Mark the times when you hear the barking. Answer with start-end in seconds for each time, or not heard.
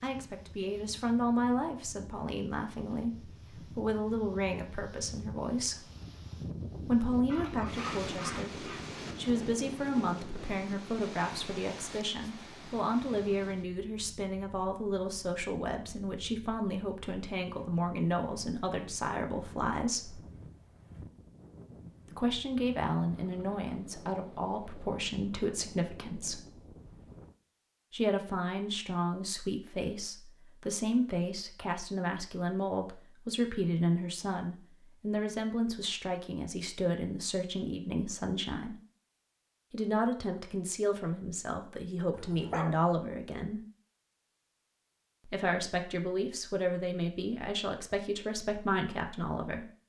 7.2-8.8, 42.1-42.8.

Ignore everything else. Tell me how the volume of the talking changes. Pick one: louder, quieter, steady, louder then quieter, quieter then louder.
steady.